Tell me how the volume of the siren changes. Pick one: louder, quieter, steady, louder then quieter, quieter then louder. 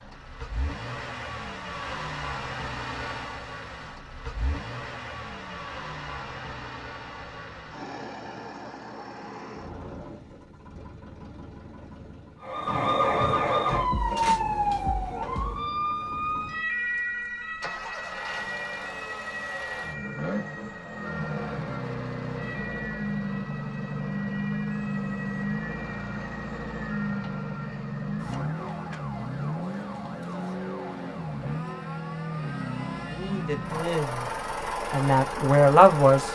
quieter.